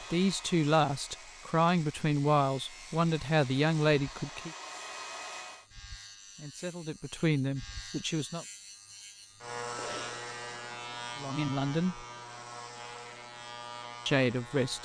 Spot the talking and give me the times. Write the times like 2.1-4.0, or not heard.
0.1-4.5, 6.3-8.4, 11.2-12.1, 14.1-14.8.